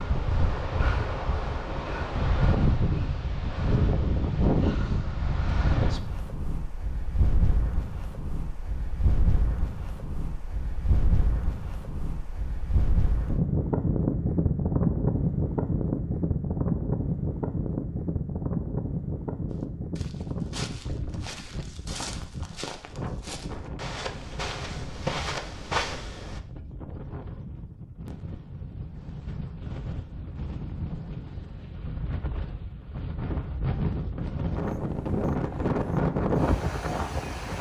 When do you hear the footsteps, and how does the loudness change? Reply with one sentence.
The footsteps can be heard from 19.5 to 26.4 s, getting louder.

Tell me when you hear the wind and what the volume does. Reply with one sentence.
The wind can be heard from 0.0 to 37.5 s, getting quieter then louder.